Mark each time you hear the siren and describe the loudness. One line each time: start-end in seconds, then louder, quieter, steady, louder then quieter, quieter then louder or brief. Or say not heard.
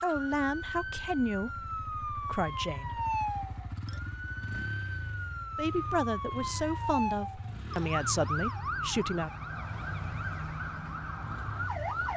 0.0-12.1 steady.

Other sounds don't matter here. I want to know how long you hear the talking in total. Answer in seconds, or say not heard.
7 s.